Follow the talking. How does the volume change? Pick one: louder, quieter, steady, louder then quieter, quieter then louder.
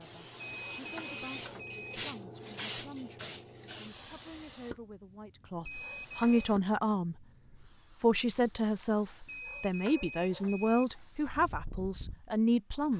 louder.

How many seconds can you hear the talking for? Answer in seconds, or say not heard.
12 s.